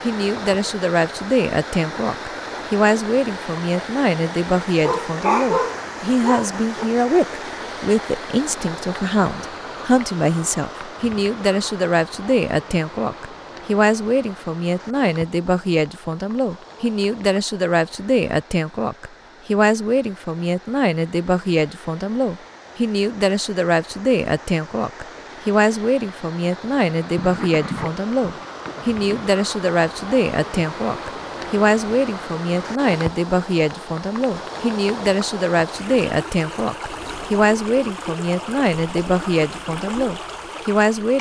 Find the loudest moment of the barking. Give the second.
5 s.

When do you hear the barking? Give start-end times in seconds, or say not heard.
4.8-6.8, 27.1-29.3.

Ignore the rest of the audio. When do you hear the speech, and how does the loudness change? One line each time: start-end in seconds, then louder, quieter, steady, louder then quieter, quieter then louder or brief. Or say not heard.
0.0-41.1 steady.